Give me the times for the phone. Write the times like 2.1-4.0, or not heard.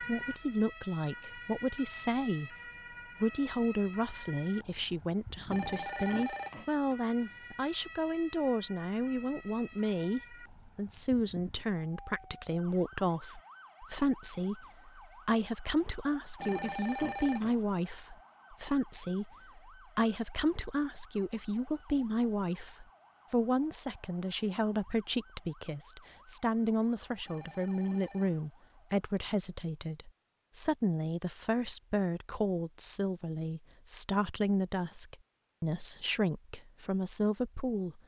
5.5-6.7, 16.4-17.6, 27.2-28.5.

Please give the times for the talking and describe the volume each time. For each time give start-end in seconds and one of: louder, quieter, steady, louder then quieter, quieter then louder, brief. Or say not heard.
0.0-2.5 brief
3.2-38.0 steady.